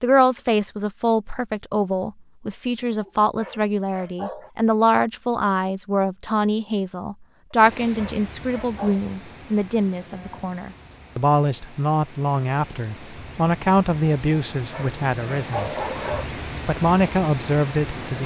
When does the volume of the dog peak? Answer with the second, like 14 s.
16 s.